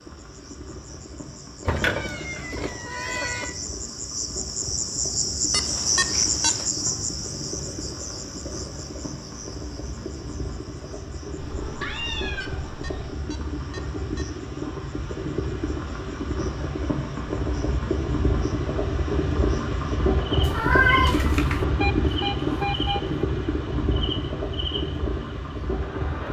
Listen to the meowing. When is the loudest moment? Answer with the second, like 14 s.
21 s.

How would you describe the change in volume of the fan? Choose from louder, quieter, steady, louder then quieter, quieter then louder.
louder.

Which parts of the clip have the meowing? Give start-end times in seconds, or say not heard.
1.6-3.5, 11.3-13.2, 20.4-21.6.